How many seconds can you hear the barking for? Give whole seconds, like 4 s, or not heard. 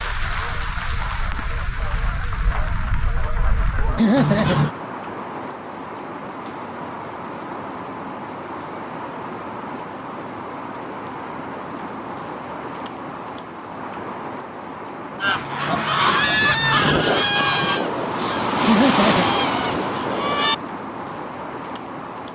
not heard.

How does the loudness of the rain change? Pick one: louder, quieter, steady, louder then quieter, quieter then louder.
louder.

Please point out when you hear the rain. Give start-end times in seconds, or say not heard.
0.0-22.3.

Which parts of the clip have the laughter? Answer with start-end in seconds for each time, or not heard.
4.0-4.5, 18.6-19.2.